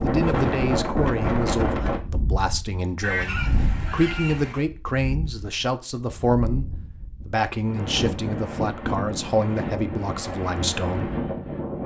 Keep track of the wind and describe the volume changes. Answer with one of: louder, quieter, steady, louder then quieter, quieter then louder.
quieter then louder.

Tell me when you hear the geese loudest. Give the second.
3 s.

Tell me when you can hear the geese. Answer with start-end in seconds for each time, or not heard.
3.0-4.6.